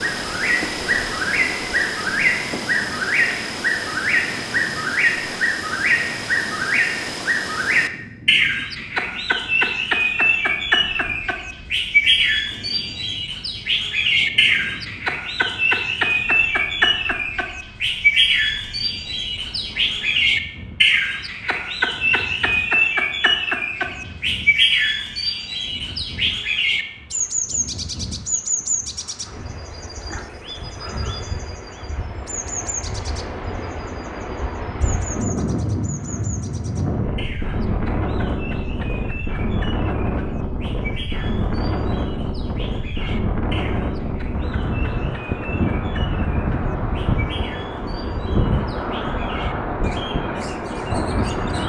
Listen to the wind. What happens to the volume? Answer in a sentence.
The loudness of the wind goes up.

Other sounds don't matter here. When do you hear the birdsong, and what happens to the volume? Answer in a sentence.
You can hear the birdsong from 0.0 to 51.6 s, getting quieter.